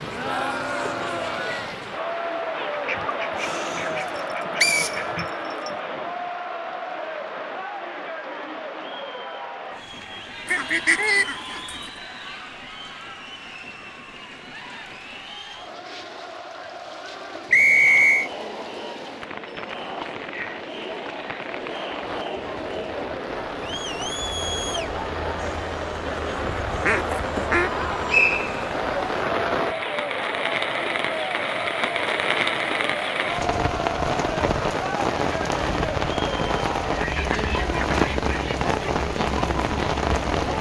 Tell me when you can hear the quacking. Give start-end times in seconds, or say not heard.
2.7-5.3, 10.4-11.9, 26.6-27.9, 37.0-38.8.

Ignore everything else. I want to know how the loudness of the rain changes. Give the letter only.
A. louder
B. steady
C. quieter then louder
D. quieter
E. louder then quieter
C.